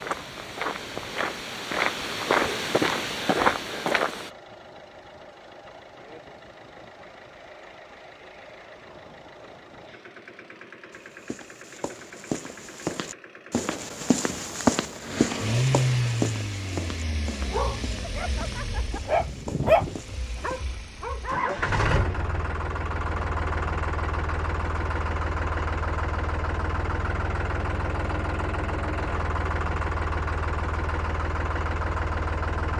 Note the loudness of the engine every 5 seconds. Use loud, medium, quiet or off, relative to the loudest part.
quiet, quiet, quiet, loud, loud, loud, loud.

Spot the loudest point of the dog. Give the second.
20 s.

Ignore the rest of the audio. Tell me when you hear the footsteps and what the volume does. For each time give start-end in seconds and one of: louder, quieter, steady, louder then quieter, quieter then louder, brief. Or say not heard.
0.0-4.3 louder
10.9-20.6 louder then quieter.